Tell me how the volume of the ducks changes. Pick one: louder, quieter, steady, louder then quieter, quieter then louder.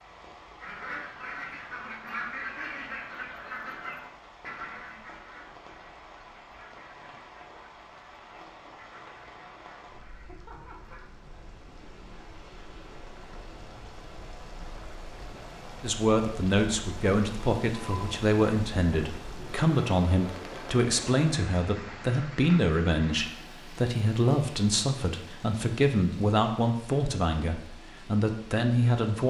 quieter.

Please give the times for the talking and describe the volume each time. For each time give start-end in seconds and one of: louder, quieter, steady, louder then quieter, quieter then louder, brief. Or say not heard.
15.8-29.2 steady.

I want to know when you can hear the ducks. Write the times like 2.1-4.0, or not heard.
0.6-11.1.